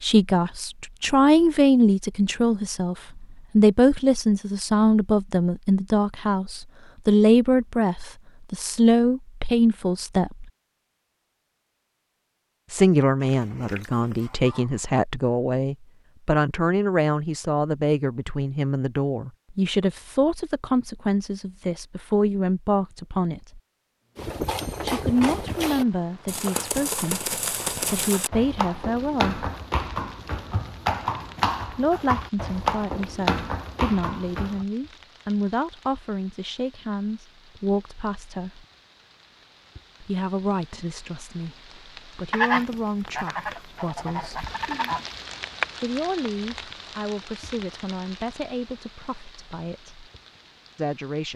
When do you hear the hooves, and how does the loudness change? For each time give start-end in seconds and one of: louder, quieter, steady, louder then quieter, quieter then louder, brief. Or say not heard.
24.1-34.6 steady.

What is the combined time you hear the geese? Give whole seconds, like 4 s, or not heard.
4 s.